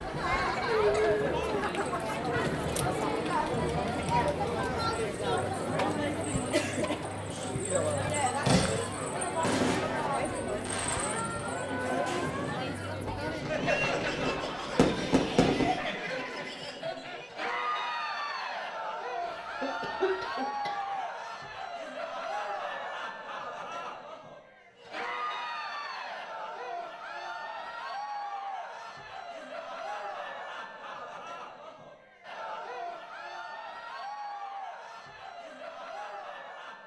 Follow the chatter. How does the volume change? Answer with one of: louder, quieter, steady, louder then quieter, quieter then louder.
quieter.